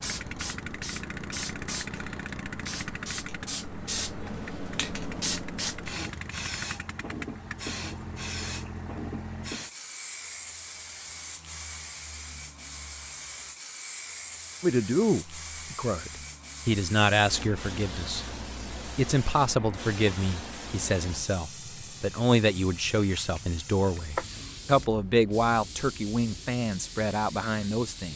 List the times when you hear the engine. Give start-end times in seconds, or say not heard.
0.0-9.6.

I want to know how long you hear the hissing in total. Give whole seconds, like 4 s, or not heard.
28 s.